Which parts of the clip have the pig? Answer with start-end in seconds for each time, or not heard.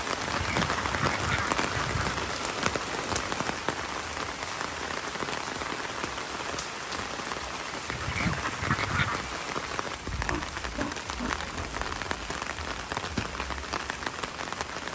10.2-11.8.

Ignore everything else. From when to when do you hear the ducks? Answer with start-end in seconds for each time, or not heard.
0.2-2.2, 7.9-9.3.